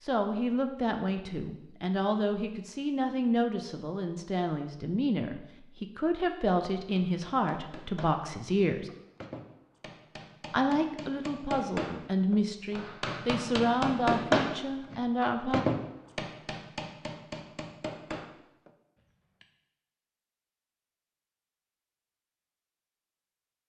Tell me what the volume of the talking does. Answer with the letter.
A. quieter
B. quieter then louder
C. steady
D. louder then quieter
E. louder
C.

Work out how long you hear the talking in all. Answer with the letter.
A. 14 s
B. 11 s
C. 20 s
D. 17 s
A.